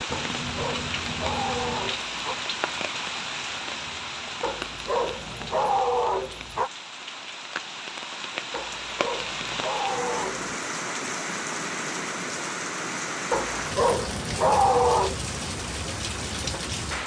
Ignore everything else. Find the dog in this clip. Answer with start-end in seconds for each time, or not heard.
0.1-2.4, 4.4-6.7, 8.5-10.5, 13.3-15.2.